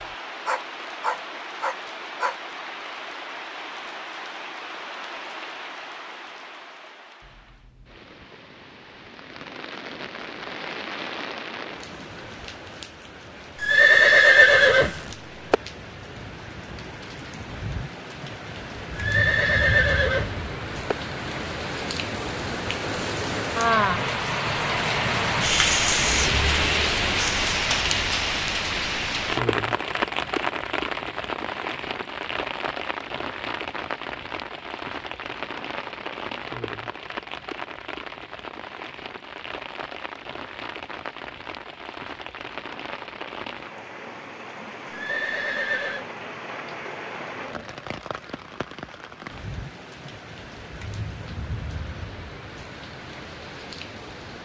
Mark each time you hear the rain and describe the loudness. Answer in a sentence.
You can hear the rain from 0.0 to 54.3 s, getting louder then quieter.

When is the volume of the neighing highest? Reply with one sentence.
The loudest moment of the neighing is at 14 seconds.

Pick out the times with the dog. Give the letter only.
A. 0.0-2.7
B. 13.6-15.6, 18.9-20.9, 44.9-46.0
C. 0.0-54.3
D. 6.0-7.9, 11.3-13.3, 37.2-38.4
A.